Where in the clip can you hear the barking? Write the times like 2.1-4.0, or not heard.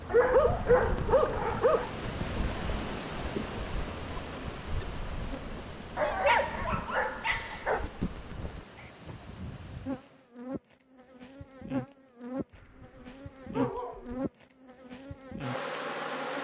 0.1-1.9, 6.0-7.9, 12.5-14.2.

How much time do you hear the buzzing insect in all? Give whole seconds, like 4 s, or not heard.
16 s.